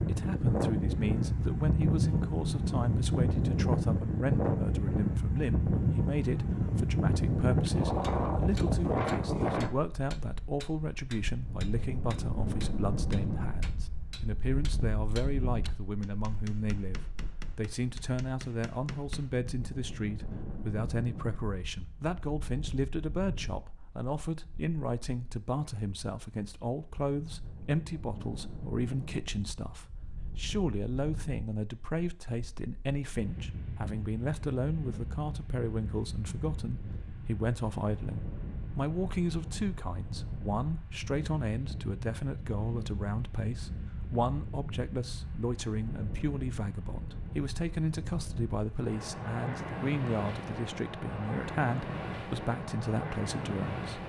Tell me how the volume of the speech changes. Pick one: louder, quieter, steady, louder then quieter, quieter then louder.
steady.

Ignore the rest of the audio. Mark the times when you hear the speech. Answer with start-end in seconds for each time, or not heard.
0.1-54.0.